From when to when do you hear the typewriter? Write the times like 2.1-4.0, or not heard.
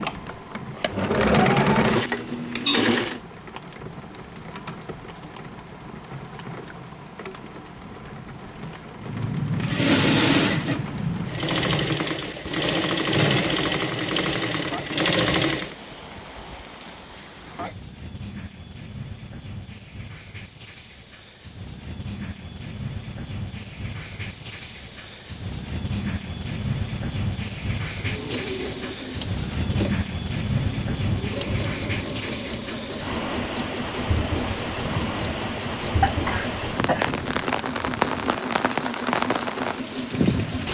not heard.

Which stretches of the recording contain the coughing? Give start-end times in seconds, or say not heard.
36.0-37.1.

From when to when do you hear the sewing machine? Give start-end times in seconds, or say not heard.
0.0-3.2, 9.0-15.8, 28.0-40.6.